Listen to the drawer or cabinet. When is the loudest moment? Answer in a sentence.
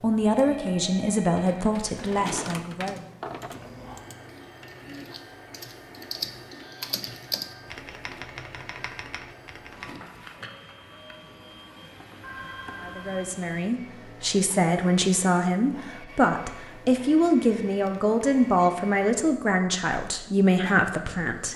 The loudest moment of the drawer or cabinet is at 2 seconds.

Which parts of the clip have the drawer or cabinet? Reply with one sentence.
You can hear the drawer or cabinet from 1.9 to 3.8 s.